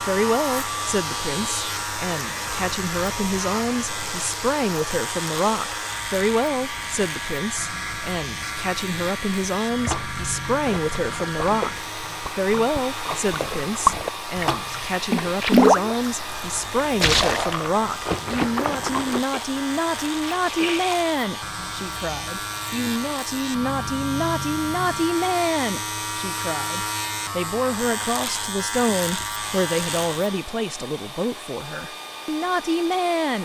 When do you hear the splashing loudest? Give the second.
16 s.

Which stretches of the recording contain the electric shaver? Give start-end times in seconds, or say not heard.
0.0-30.5.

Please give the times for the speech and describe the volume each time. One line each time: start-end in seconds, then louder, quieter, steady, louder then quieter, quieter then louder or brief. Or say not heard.
0.0-33.4 steady.